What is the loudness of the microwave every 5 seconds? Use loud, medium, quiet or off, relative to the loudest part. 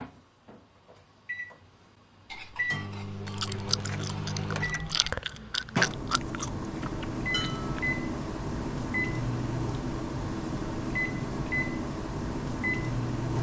medium, loud, loud.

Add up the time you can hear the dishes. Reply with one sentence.
You can hear the dishes for 3 seconds altogether.